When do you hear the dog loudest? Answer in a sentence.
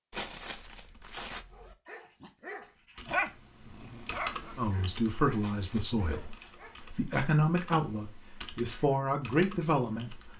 The loudest moment of the dog is at 3 seconds.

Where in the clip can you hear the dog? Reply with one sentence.
The dog can be heard from 1.2 to 7.0 s.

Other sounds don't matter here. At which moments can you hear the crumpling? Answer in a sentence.
You can hear the crumpling from 0.1 to 1.4 s and from 5.3 to 6.5 s.